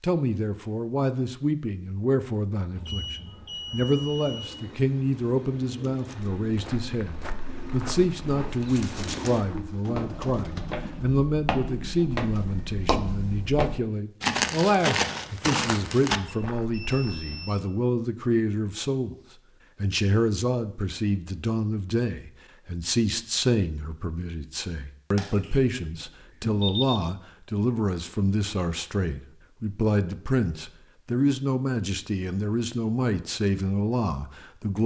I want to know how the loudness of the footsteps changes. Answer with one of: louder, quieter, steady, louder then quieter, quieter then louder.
louder.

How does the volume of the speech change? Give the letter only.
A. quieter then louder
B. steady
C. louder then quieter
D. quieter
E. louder
B.